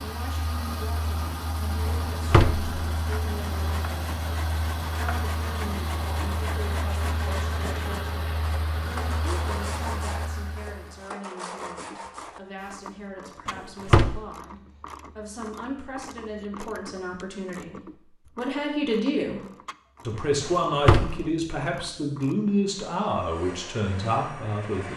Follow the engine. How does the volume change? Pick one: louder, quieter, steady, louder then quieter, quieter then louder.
steady.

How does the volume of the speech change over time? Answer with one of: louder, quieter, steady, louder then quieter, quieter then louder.
louder.